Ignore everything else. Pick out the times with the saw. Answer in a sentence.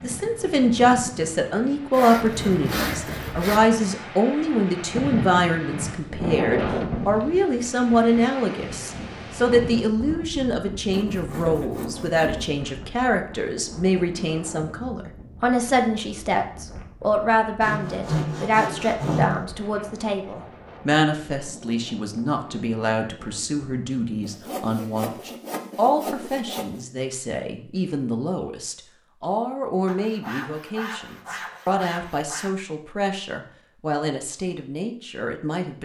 You can hear the saw from 1.9 to 3.6 s, from 10.9 to 12.5 s, from 17.6 to 19.4 s, from 24.2 to 26.8 s and from 29.9 to 32.5 s.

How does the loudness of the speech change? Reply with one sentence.
The loudness of the speech goes down.